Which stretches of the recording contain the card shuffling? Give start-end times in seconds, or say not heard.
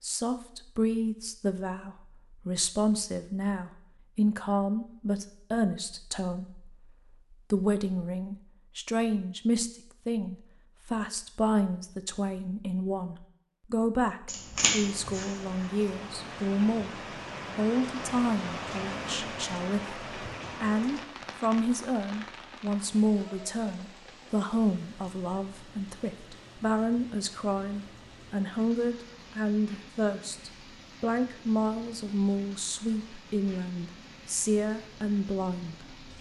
14.2-15.7.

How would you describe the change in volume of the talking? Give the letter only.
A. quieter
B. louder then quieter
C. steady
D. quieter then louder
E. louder
C.